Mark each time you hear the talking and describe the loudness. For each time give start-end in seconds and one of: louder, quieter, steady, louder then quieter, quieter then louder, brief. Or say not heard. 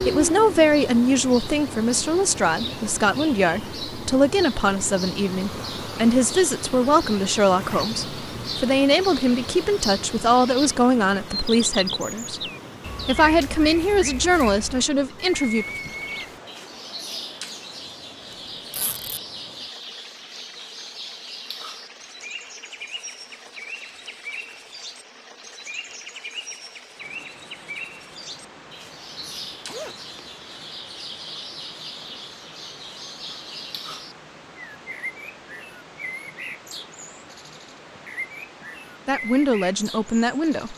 0.1-12.4 steady
13.1-15.7 brief
39.0-40.7 brief.